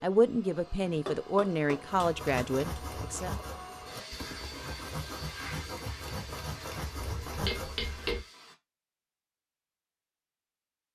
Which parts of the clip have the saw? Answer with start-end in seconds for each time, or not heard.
1.9-8.2.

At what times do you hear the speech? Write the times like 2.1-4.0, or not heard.
0.0-3.3.